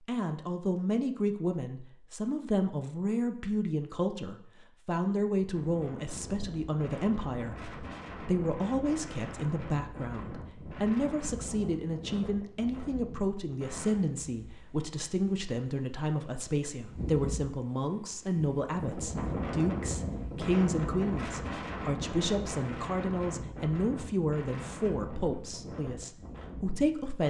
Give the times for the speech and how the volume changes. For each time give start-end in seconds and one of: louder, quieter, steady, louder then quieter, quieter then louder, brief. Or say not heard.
0.1-27.2 steady.